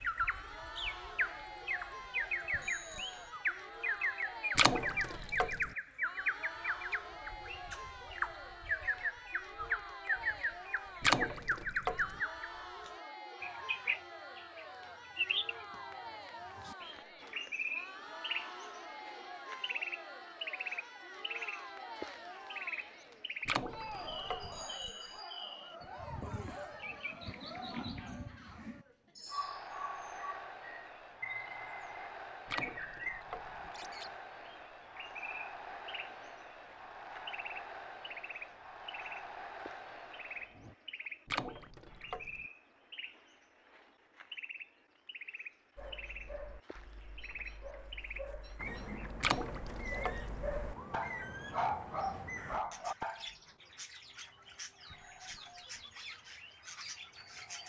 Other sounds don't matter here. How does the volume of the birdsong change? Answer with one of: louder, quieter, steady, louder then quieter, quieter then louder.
quieter.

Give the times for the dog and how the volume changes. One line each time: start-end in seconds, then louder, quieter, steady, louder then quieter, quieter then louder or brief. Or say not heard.
45.8-53.4 louder.